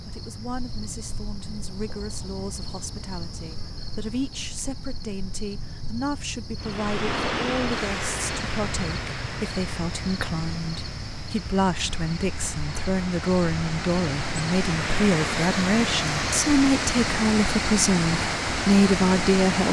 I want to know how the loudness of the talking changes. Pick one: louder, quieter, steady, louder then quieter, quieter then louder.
louder.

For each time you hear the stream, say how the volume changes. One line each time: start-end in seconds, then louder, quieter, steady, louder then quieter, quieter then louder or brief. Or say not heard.
6.5-19.6 quieter then louder.